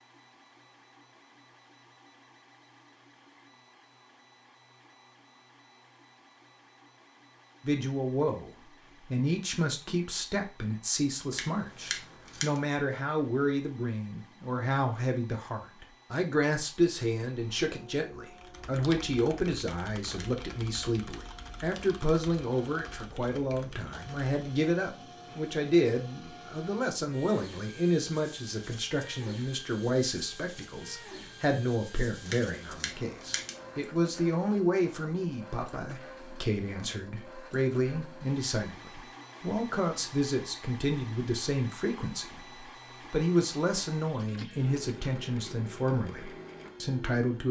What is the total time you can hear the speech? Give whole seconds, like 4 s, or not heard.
39 s.